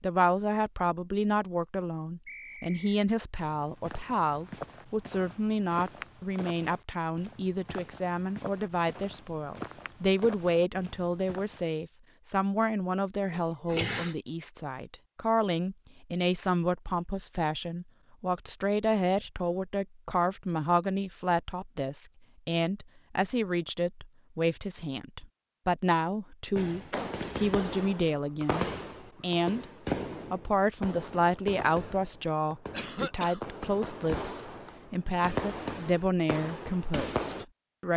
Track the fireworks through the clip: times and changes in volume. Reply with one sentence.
The fireworks can be heard from 26.6 to 37.5 s, getting quieter then louder.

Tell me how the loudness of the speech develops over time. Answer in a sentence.
The loudness of the speech stays about the same.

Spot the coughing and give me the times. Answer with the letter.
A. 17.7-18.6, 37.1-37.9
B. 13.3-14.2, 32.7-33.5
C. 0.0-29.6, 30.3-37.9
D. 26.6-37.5
B.